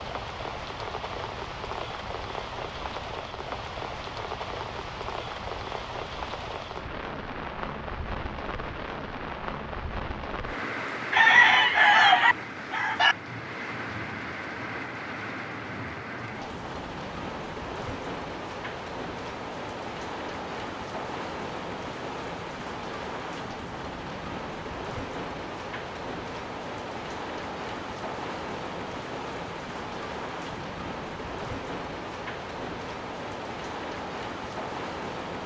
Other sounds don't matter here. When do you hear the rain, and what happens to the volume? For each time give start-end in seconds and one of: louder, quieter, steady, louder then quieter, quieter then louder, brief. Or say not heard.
0.0-35.4 steady.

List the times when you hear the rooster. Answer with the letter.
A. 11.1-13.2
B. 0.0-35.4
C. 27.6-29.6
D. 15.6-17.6
A.